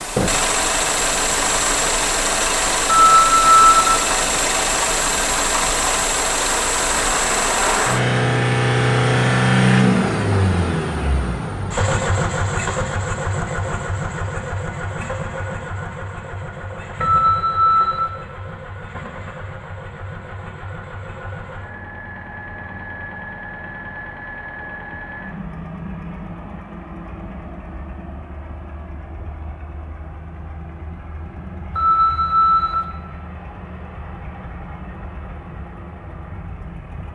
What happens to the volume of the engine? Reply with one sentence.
The loudness of the engine goes down.